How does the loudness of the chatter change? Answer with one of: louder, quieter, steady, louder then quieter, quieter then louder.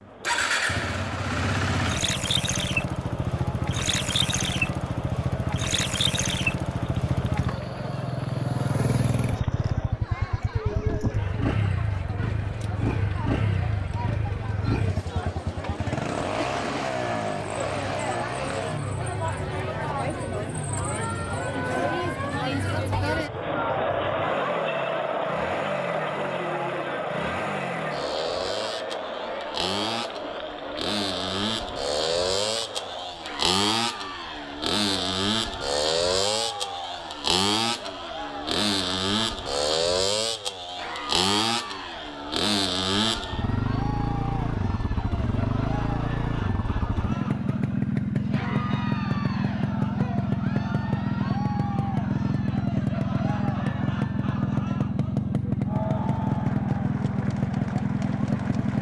louder then quieter.